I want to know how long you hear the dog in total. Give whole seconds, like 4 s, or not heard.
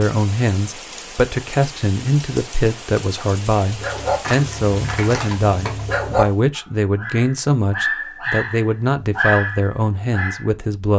7 s.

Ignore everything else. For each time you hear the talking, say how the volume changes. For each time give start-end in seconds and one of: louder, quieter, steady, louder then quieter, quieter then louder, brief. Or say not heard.
0.0-10.9 steady.